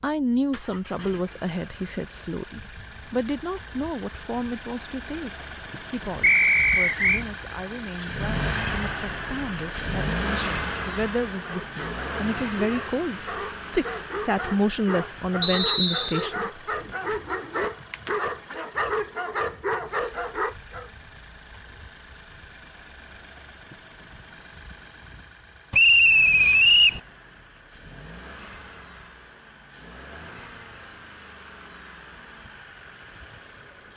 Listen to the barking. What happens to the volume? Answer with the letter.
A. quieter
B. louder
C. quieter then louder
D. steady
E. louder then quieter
B.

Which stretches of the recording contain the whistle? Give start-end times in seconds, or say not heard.
6.2-7.2, 15.4-16.2, 25.7-27.0.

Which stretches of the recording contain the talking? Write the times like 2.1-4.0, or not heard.
0.0-16.5.